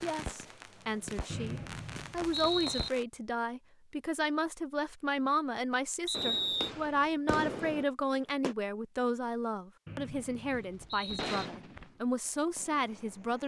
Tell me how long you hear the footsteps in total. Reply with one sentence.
You can't hear the footsteps here.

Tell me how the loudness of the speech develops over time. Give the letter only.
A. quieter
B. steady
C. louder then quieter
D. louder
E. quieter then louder
B.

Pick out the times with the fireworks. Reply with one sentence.
You can hear the fireworks from 0.0 to 3.0 s, from 6.1 to 8.6 s and from 10.5 to 13.4 s.